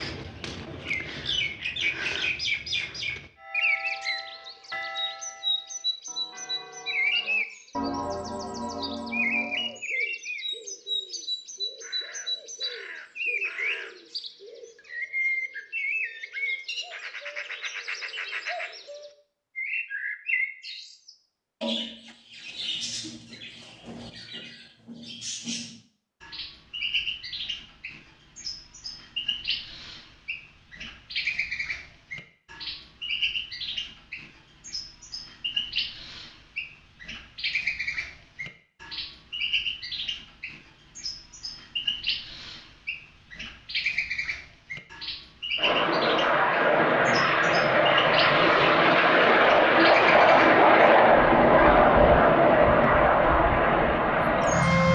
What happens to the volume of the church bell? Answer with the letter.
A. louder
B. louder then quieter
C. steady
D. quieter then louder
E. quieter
D.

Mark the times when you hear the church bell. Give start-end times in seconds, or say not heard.
3.4-9.8.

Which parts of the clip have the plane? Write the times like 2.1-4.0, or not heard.
45.5-54.9.